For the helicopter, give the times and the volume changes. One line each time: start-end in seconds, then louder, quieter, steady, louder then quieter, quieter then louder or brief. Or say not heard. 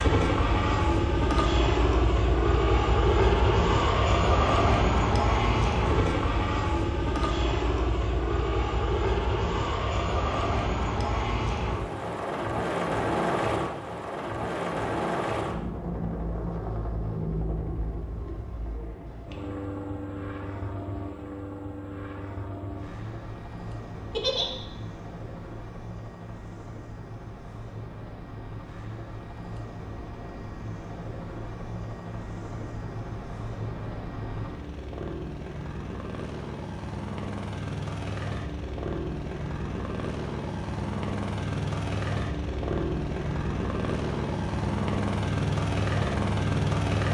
0.0-47.0 quieter then louder.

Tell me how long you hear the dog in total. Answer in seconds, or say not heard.
not heard.